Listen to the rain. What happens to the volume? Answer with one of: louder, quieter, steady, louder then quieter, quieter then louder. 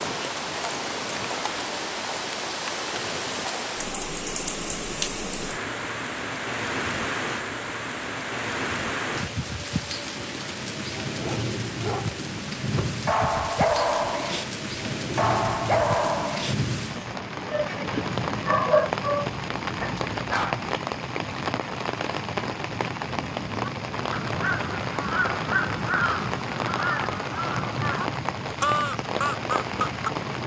steady.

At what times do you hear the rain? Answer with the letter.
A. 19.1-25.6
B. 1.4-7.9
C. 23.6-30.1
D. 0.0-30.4
D.